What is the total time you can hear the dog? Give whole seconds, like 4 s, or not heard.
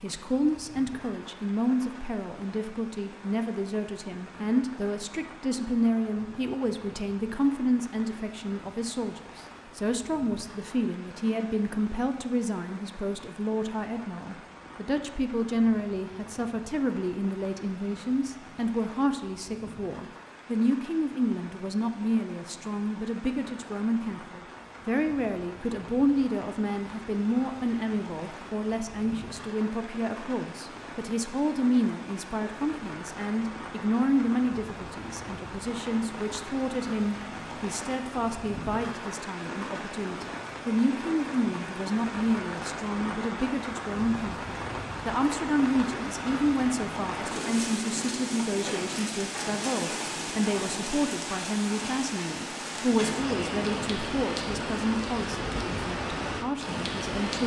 not heard.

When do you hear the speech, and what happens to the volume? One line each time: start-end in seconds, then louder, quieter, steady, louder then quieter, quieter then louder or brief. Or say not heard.
0.0-57.4 steady.